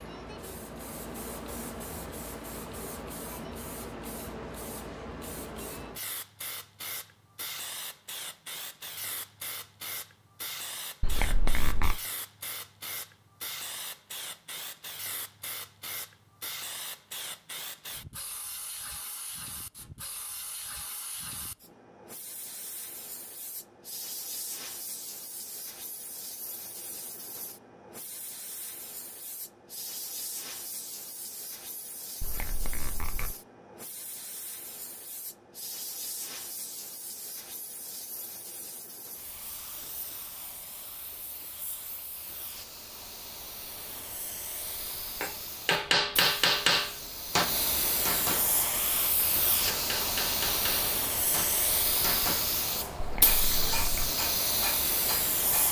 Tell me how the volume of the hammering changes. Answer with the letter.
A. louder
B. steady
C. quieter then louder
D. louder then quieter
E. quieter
E.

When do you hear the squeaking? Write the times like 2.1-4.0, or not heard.
11.0-11.9, 32.2-33.3, 53.0-54.1.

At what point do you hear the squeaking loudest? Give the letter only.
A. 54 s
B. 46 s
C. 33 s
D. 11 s
D.